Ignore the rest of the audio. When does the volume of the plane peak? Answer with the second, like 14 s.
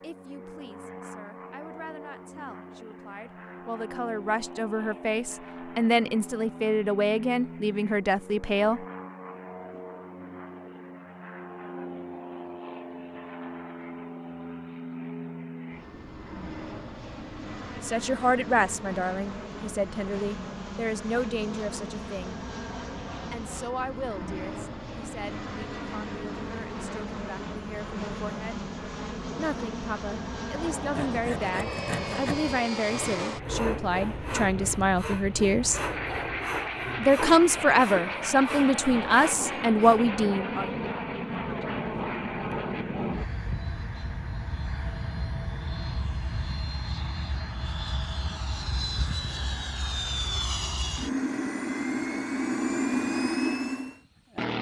53 s.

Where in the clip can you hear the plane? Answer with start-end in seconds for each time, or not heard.
0.0-54.5.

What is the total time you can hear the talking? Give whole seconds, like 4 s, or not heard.
29 s.